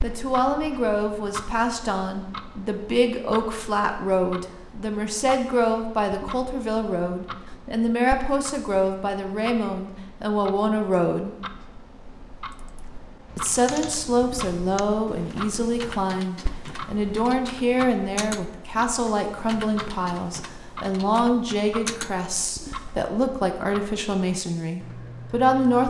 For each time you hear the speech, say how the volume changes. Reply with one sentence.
The speech can be heard from 0.0 to 11.3 s, at a steady volume; and from 13.3 to 25.8 s, at a steady volume.